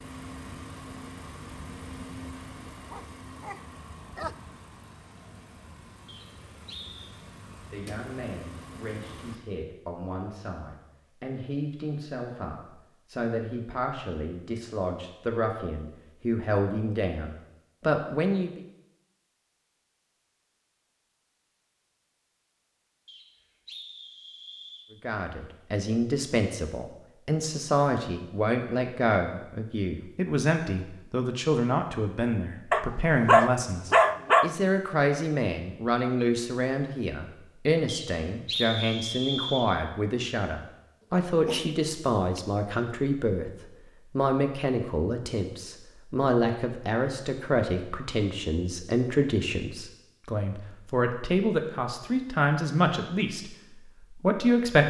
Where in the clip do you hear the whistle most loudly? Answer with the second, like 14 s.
39 s.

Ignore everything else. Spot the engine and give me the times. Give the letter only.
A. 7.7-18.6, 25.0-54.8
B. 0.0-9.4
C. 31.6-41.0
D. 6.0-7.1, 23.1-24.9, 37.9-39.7
B.